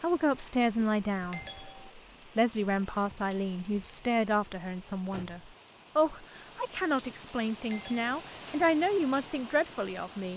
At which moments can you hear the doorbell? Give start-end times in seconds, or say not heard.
1.3-1.9, 7.7-8.2.